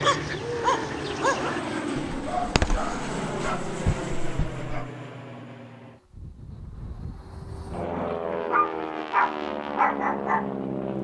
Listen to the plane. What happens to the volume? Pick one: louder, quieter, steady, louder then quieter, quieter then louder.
quieter then louder.